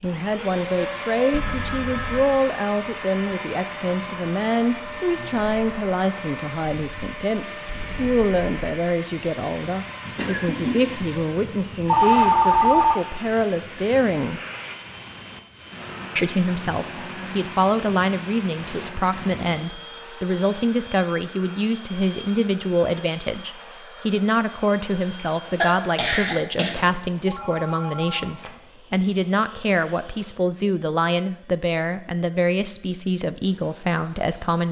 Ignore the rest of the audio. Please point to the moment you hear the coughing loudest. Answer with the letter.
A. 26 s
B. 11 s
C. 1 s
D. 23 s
A.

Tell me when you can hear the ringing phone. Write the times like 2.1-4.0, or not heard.
1.3-2.5, 11.8-12.9, 26.8-28.6.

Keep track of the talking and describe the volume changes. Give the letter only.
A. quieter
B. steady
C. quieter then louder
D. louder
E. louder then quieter
B.